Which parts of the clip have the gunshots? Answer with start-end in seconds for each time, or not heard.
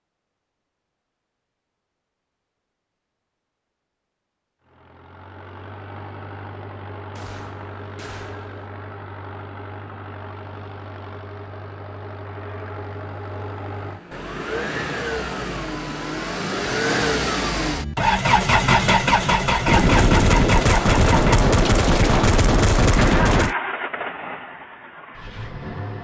7.1-8.6, 19.6-23.6.